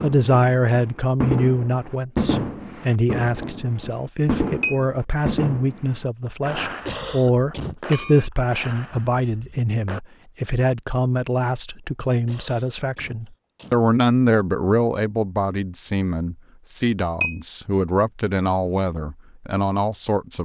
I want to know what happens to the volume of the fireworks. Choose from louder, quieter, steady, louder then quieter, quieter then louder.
quieter.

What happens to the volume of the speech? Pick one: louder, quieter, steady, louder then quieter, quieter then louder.
steady.